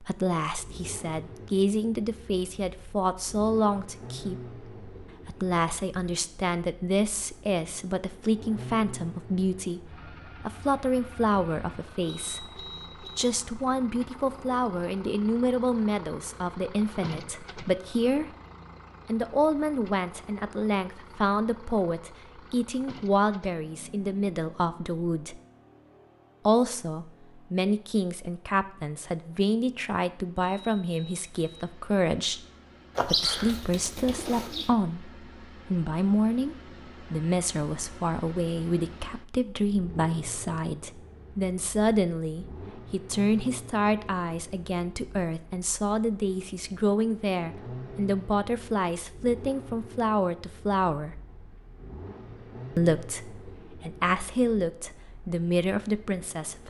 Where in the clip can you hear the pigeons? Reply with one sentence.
The pigeons can be heard from 33.0 to 34.7 s.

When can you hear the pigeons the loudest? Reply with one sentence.
The loudest moment of the pigeons is at 33 seconds.